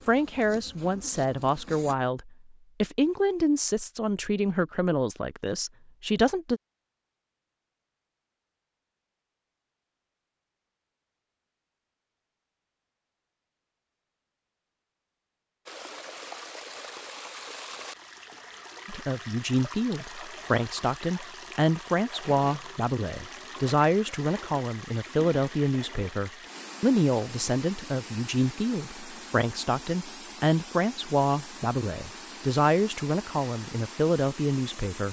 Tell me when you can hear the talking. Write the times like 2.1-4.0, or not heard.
0.1-6.6, 18.9-35.0.